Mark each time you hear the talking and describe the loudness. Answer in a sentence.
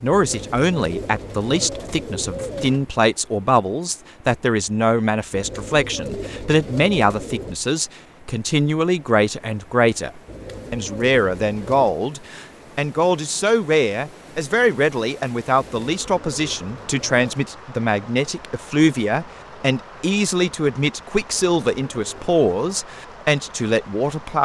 You can hear the talking from 0.0 to 24.4 s, at a steady volume.